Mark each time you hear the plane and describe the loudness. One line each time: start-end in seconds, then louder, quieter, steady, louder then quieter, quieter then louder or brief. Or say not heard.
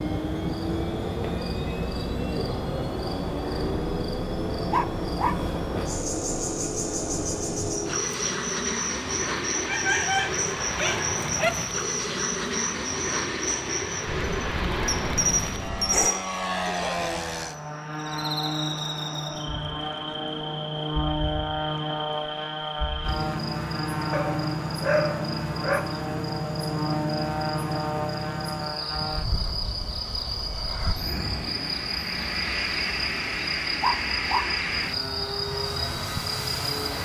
0.0-36.9 steady.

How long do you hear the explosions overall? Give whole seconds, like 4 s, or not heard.
2 s.